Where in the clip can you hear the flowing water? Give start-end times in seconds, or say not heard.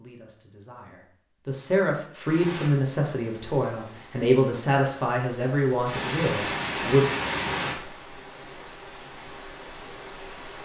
2.2-10.6.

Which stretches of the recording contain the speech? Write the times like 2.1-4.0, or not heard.
0.0-7.0.